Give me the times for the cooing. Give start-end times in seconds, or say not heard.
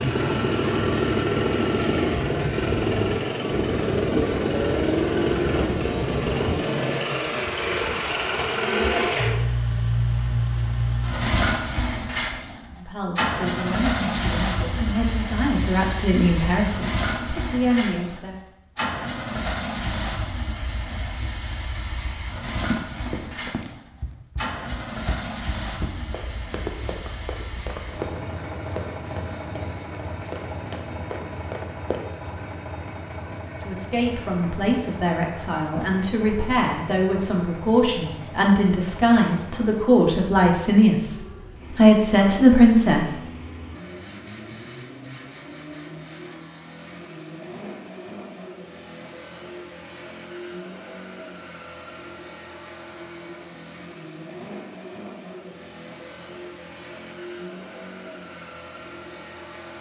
not heard.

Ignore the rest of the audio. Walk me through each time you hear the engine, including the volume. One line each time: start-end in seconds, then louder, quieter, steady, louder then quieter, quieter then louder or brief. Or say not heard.
0.0-59.7 quieter.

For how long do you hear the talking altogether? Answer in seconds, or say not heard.
15 s.